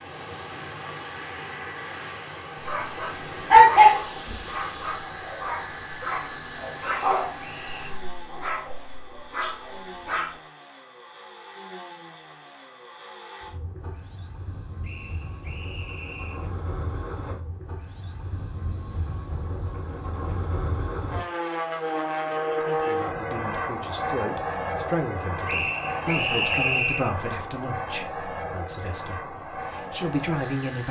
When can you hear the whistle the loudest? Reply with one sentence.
The volume of the whistle peaks at 27 seconds.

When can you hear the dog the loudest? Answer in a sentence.
The loudest moment of the dog is at 4 seconds.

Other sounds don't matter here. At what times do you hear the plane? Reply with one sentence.
The plane can be heard from 0.0 to 30.8 s.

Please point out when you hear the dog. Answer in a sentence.
You can hear the dog from 2.6 to 10.3 s.